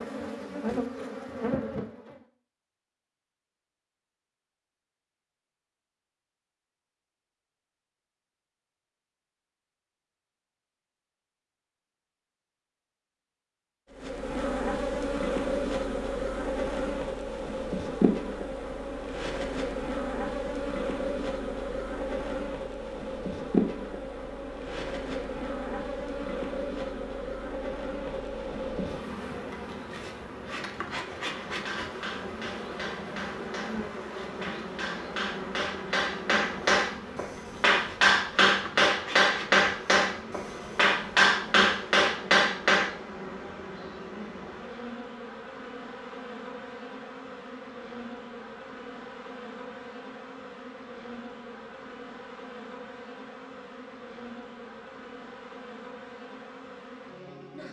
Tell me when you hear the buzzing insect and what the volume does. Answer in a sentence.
You can hear the buzzing insect briefly from 0.0 to 2.2 s; and from 13.9 to 57.6 s, getting quieter.